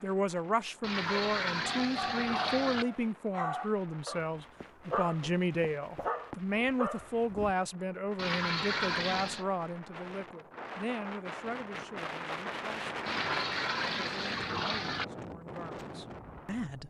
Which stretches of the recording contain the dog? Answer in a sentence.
You can hear the dog from 1.0 to 7.5 s.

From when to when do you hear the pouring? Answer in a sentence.
You can hear the pouring from 0.8 to 2.9 s, from 8.2 to 9.4 s and from 13.1 to 15.1 s.